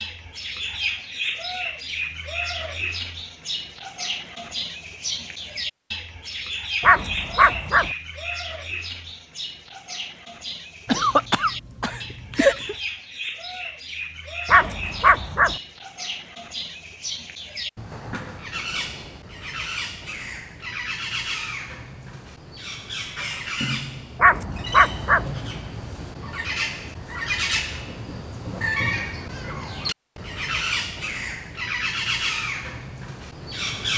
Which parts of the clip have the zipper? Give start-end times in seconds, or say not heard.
not heard.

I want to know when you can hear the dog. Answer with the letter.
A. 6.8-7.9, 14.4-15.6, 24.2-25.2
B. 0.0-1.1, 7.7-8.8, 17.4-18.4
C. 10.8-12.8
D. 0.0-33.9
A.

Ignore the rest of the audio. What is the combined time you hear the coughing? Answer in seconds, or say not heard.
2 s.